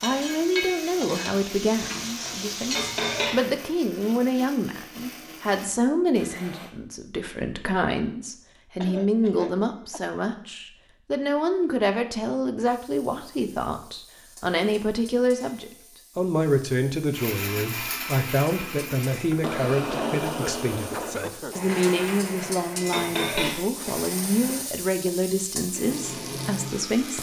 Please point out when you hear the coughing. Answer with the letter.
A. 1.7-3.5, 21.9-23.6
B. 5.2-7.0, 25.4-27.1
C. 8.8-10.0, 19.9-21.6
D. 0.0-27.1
C.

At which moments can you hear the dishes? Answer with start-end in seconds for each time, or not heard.
1.7-3.5, 21.9-23.6.